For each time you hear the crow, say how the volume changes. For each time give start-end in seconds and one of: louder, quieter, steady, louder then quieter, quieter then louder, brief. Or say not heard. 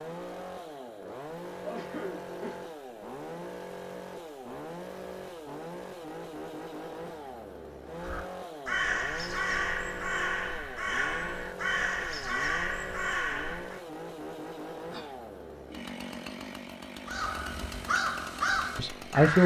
8.0-13.8 steady
17.1-19.4 brief.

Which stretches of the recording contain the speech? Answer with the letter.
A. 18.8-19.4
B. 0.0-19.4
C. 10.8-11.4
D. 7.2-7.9
A.